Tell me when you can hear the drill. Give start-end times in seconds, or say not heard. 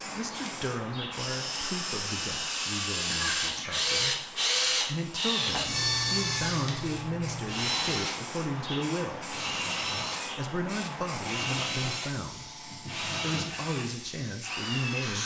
0.0-15.2.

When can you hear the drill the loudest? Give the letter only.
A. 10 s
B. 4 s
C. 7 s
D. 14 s
B.